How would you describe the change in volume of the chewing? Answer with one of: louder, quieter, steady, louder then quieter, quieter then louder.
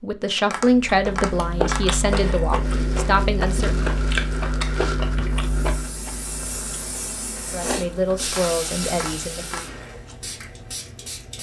quieter.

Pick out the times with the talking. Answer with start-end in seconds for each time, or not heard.
0.0-3.9, 7.5-9.7.